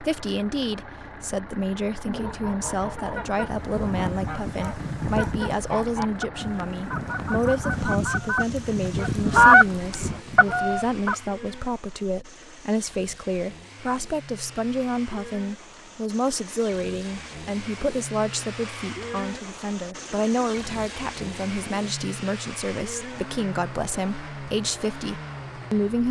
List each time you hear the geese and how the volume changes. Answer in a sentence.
You can hear the geese from 2.0 to 11.2 s, getting louder.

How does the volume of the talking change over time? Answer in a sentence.
The volume of the talking stays about the same.